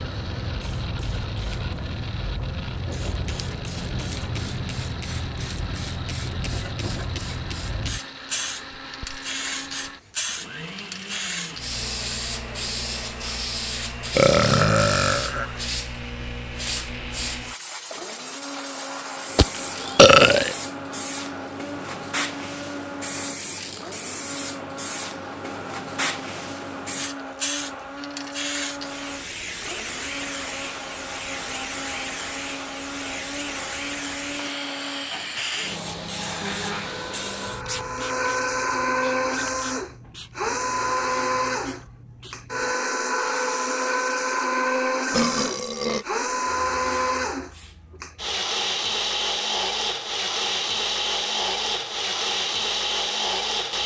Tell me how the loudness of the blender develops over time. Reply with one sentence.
The loudness of the blender goes up.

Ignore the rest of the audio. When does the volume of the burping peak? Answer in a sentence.
The volume of the burping peaks at 20 seconds.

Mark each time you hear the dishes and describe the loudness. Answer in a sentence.
You can't hear the dishes here.